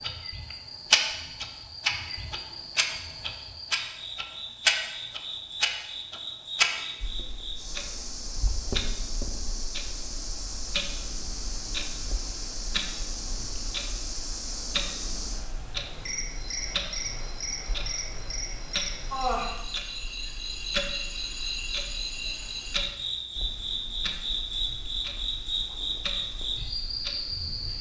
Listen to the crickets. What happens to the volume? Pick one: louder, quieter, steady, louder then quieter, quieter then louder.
louder.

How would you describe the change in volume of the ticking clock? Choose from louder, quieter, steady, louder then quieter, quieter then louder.
quieter.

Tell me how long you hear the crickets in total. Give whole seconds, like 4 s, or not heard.
28 s.